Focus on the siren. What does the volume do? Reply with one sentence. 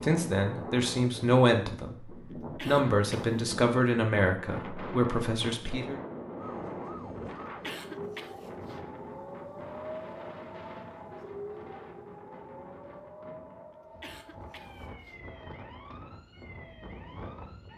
The volume of the siren goes down.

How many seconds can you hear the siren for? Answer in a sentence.
The siren can be heard for 11 seconds in total.